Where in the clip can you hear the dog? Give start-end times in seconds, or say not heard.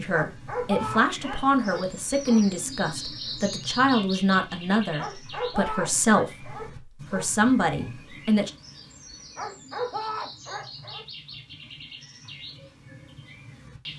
0.1-2.5, 5.0-7.3, 9.3-11.1.